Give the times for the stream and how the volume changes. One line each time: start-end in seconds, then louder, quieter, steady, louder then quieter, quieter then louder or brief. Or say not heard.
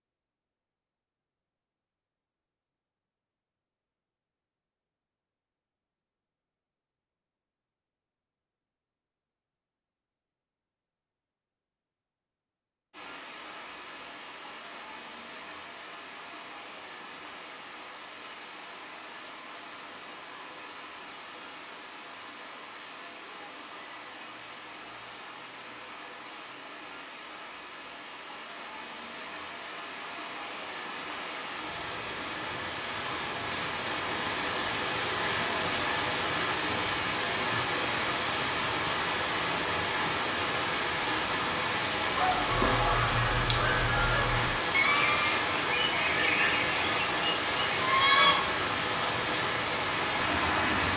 12.9-50.9 louder.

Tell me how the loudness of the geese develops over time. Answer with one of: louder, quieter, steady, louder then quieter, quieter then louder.
steady.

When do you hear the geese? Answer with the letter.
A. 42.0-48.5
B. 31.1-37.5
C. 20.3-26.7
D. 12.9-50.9
A.